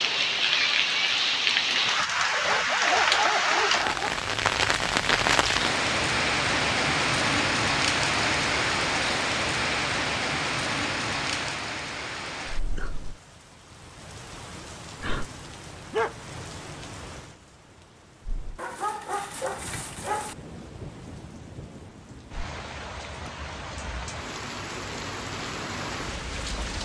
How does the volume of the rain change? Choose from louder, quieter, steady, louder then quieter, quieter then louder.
quieter then louder.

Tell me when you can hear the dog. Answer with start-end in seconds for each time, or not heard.
2.3-4.2, 15.2-16.1, 18.6-20.4.